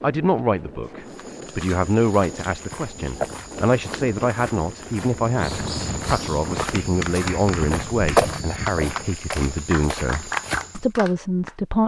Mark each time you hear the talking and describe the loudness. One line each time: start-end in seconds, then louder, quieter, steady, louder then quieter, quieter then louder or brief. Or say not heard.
0.0-11.8 steady.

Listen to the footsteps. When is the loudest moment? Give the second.
8 s.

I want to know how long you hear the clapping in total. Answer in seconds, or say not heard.
5 s.